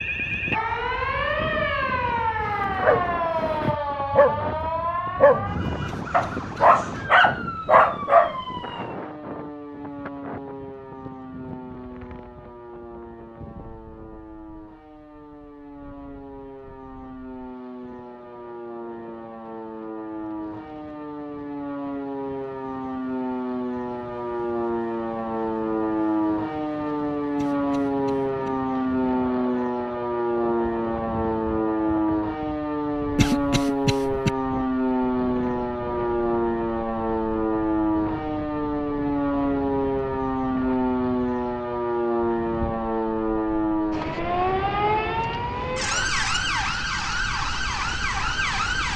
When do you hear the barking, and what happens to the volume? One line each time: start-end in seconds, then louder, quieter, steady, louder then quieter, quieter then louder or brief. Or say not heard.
2.4-8.3 louder.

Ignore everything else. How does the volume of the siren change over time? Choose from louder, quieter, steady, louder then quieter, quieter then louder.
quieter then louder.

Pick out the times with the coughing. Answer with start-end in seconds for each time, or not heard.
5.8-6.8, 27.4-28.5, 33.1-34.3.